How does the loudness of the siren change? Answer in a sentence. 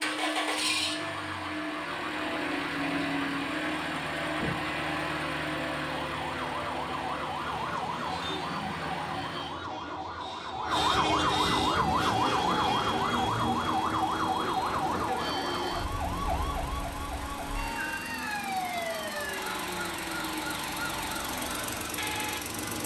The loudness of the siren goes up, then down.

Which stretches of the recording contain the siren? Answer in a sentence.
You can hear the siren from 0.0 to 22.6 s.